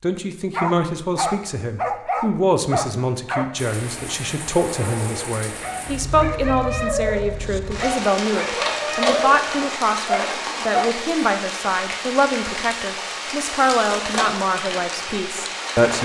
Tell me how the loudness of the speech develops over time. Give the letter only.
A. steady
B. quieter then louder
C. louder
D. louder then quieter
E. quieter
A.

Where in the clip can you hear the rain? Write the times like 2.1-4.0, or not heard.
3.5-15.9.